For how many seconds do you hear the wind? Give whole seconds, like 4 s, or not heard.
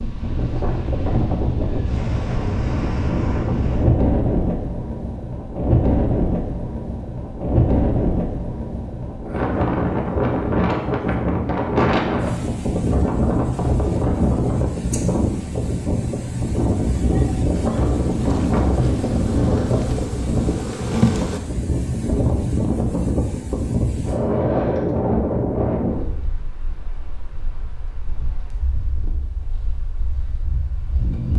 31 s.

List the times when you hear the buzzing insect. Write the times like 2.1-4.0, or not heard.
17.6-21.4.